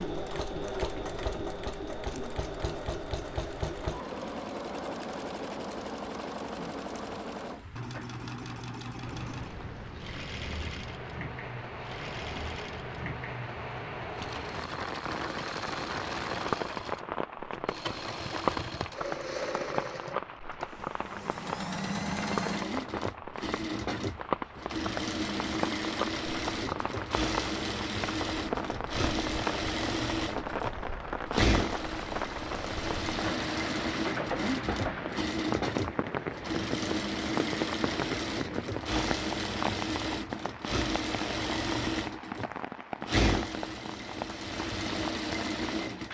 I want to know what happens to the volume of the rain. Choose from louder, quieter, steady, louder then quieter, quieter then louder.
louder.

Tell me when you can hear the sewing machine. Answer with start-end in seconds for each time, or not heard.
0.0-46.0.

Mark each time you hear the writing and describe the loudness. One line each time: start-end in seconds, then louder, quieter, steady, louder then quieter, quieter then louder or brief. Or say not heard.
not heard.